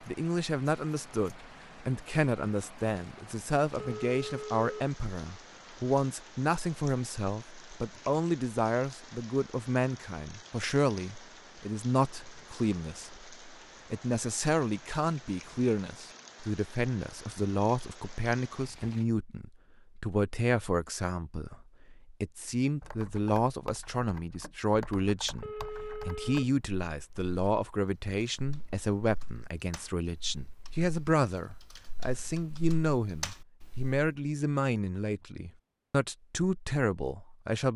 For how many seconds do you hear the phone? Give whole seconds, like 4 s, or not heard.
2 s.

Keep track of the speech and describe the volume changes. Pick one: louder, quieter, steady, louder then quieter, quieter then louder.
steady.